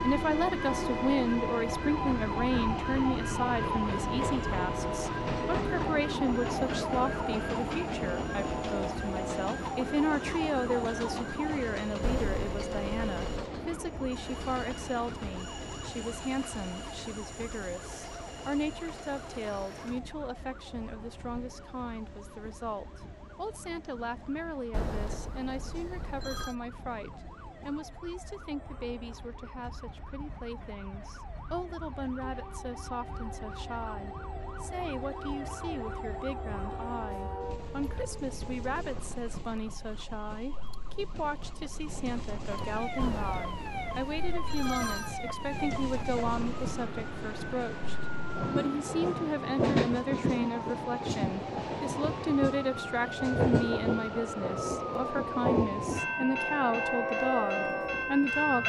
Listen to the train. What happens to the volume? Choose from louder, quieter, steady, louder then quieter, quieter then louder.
quieter then louder.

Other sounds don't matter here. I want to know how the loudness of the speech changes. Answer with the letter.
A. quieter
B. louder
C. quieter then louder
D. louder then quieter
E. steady
C.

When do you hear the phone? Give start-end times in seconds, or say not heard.
12.0-13.4, 24.7-26.6, 43.0-45.1.